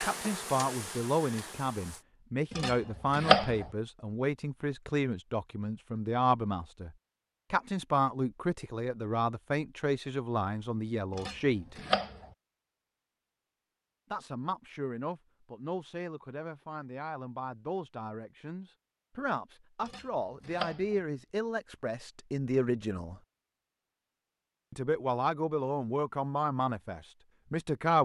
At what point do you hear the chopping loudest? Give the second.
3 s.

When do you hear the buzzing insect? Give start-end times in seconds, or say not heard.
0.0-2.0.